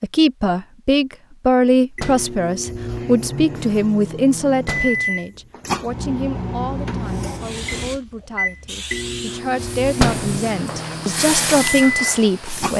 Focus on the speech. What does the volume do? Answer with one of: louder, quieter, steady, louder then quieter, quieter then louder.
quieter then louder.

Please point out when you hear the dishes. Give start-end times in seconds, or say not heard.
not heard.